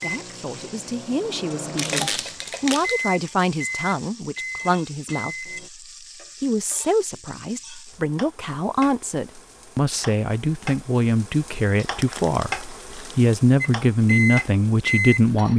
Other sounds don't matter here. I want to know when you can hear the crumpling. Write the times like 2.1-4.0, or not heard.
1.8-3.0, 11.8-13.2.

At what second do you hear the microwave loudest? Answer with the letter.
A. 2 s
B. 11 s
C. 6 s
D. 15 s
D.